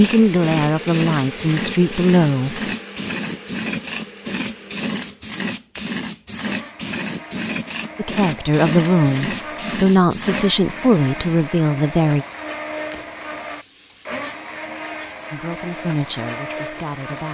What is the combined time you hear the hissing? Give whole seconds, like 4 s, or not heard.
17 s.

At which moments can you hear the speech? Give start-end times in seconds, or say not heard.
0.0-2.6, 8.0-12.2, 15.3-17.2.